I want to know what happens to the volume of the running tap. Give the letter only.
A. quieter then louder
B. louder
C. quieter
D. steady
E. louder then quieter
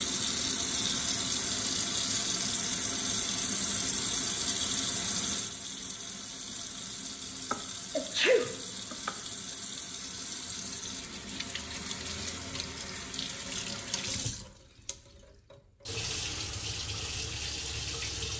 C.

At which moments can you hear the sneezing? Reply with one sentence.
You can hear the sneezing from 7.5 to 9.1 s.